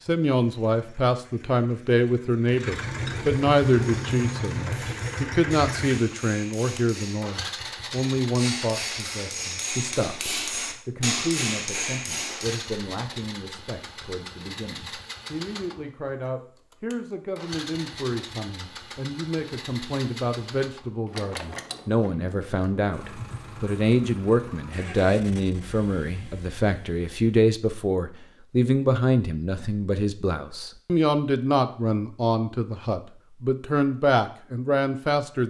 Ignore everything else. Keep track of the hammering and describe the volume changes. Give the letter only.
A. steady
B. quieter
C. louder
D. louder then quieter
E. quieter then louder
C.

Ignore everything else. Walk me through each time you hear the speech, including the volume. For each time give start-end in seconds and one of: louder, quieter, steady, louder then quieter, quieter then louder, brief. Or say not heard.
0.1-35.4 quieter then louder.